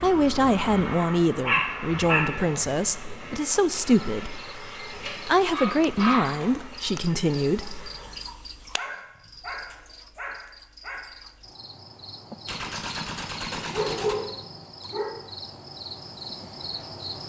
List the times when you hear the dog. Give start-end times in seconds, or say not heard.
1.4-2.6, 5.0-6.5, 8.8-11.1, 13.5-15.1.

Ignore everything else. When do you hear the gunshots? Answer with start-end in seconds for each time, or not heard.
12.4-14.2.